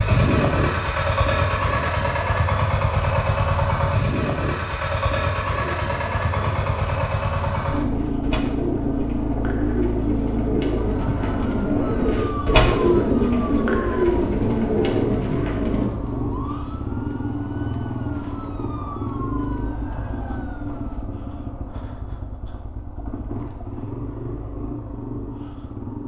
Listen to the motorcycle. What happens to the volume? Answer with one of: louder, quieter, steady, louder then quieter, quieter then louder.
quieter.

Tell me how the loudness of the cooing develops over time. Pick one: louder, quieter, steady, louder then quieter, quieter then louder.
louder.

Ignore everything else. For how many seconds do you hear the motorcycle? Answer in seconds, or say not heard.
26 s.